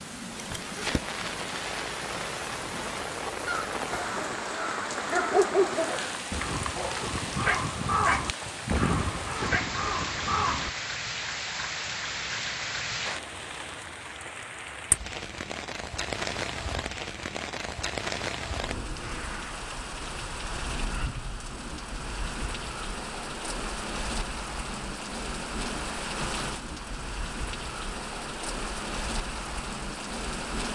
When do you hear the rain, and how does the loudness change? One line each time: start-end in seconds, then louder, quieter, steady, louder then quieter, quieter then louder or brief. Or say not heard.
0.0-30.6 steady.